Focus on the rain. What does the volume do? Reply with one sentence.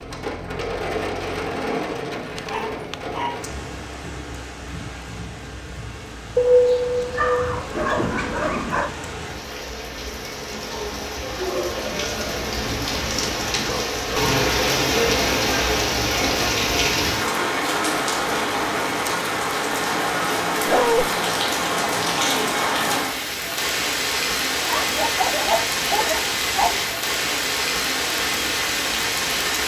The volume of the rain goes up.